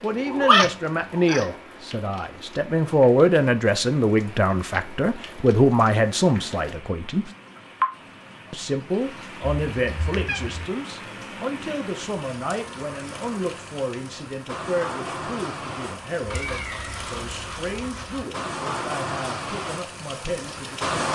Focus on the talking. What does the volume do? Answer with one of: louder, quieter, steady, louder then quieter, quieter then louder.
quieter.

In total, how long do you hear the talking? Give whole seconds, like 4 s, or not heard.
20 s.